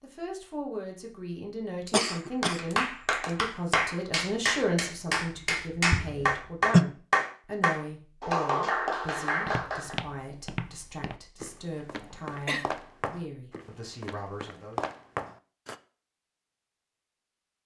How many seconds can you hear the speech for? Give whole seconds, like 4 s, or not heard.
15 s.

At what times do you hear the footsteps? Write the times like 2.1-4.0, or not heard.
9.4-15.8.